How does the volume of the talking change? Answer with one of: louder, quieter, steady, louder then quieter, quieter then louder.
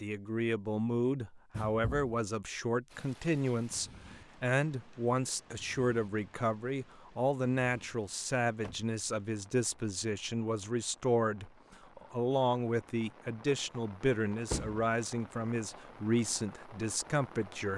steady.